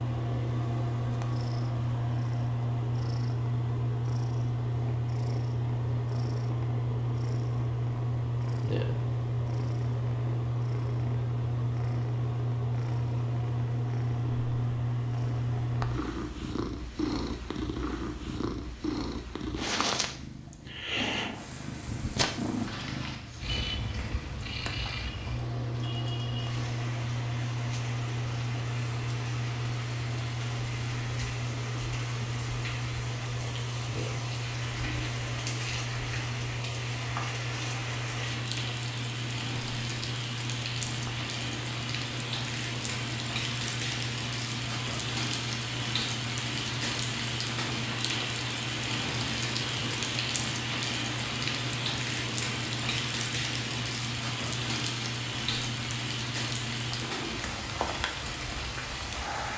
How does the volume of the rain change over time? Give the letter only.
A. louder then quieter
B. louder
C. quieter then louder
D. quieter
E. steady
B.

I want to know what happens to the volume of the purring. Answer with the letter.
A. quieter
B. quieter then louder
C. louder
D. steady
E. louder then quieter
A.